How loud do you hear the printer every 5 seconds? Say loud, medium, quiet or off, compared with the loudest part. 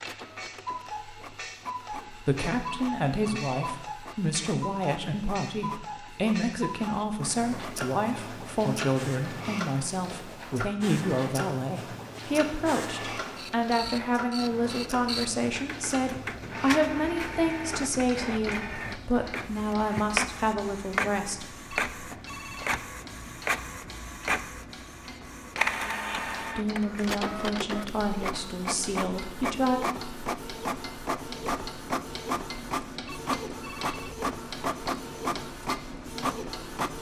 quiet, quiet, medium, loud, loud, loud, loud, loud.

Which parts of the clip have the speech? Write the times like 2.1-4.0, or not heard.
2.1-22.1, 26.6-29.8.